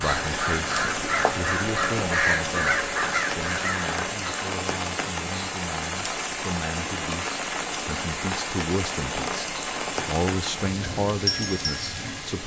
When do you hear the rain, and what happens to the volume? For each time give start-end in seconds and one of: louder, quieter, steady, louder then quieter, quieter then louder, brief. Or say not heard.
0.0-12.4 steady.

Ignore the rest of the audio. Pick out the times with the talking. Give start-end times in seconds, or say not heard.
0.0-12.4.